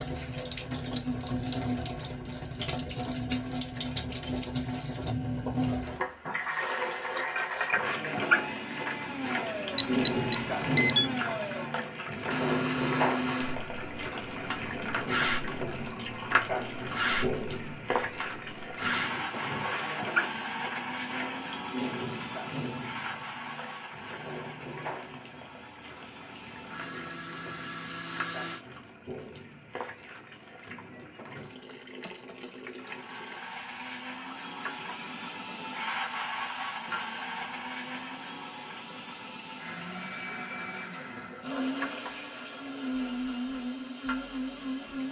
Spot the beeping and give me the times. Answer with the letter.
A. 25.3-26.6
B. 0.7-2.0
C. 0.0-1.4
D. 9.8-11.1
D.